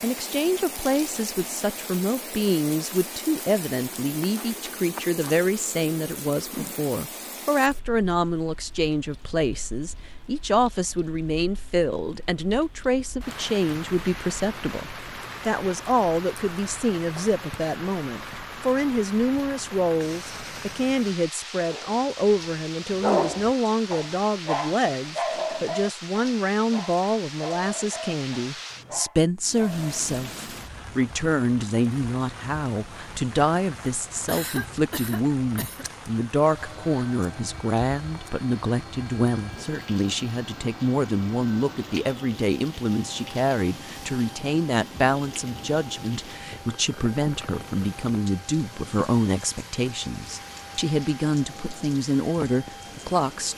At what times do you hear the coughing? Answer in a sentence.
The coughing can be heard from 34.2 to 35.9 s.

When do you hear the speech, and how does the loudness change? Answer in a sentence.
You can hear the speech from 0.0 to 53.5 s, at a steady volume.